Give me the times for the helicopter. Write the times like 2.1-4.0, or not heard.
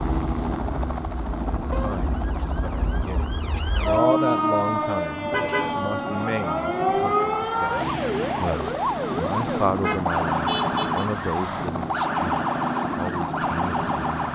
0.0-14.3.